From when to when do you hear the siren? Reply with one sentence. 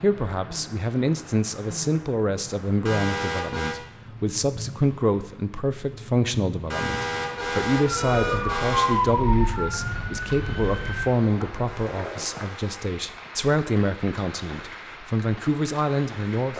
The siren can be heard from 7.8 to 11.1 s.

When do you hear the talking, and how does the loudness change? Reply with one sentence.
The talking can be heard from 0.0 to 16.5 s, at a steady volume.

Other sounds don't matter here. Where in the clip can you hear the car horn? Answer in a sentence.
The car horn can be heard from 2.9 to 3.8 s, from 6.7 to 9.0 s and from 11.7 to 12.8 s.